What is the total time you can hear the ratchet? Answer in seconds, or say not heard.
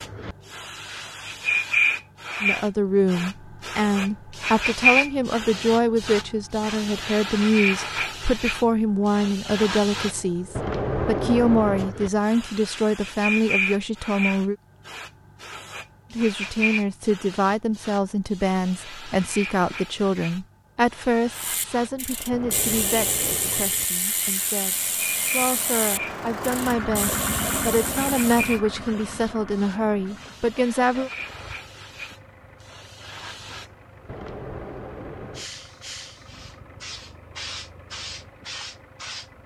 7 s.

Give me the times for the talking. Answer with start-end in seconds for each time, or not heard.
2.4-14.6, 16.1-31.1.